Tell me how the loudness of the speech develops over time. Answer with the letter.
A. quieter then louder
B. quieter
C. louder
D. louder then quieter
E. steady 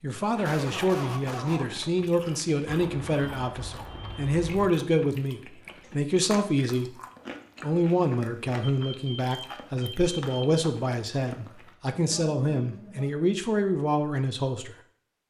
E.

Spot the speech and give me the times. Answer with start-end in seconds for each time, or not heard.
0.0-6.9, 7.6-14.8.